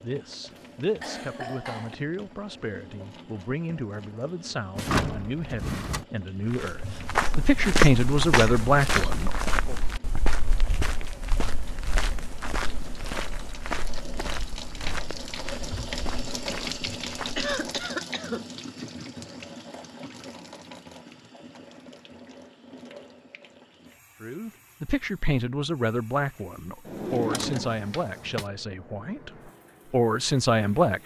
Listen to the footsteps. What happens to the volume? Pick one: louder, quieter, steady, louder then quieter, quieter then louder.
quieter.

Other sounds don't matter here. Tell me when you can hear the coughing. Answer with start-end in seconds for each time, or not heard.
0.5-1.9, 17.4-18.5.